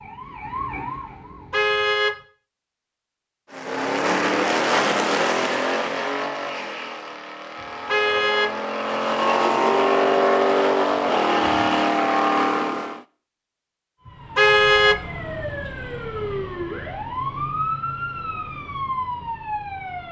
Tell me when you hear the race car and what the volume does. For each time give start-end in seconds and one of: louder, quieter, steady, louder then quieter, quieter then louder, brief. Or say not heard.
3.5-13.1 quieter then louder.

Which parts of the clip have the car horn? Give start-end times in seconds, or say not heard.
1.5-2.1, 7.8-8.5, 14.1-15.0.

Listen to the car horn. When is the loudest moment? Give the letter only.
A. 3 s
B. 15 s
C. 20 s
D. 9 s
B.